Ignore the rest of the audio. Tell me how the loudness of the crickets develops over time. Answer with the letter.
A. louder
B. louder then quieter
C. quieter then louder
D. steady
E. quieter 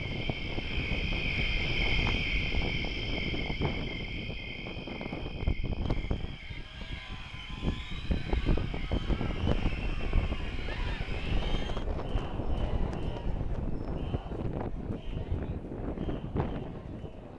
E.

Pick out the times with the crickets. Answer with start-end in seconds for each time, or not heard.
0.0-11.7.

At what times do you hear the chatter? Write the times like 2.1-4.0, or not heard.
5.8-17.3.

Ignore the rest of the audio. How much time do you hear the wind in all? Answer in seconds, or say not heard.
17 s.